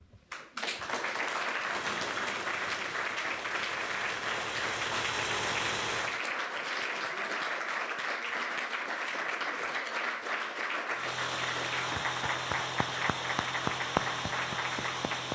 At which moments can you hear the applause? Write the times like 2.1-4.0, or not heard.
0.0-15.2.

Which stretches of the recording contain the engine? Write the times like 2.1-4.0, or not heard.
1.6-6.2, 10.9-15.2.